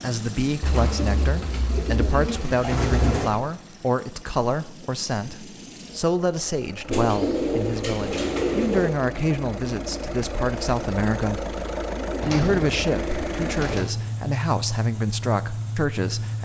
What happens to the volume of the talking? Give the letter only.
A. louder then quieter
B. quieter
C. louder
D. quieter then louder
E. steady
E.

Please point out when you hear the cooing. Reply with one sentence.
The cooing can be heard from 0.6 to 3.3 s, from 6.9 to 8.9 s and from 12.2 to 13.9 s.